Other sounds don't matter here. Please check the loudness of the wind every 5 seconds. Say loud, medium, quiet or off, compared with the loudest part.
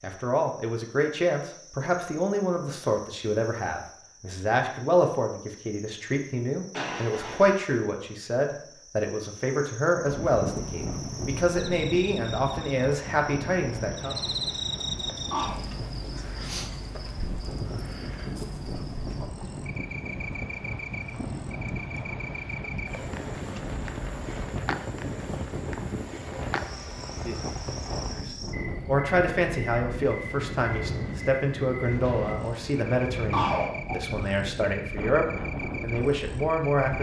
off, off, loud, loud, loud, loud, loud, loud.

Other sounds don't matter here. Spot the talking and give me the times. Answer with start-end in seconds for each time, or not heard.
0.0-14.2, 28.1-36.9.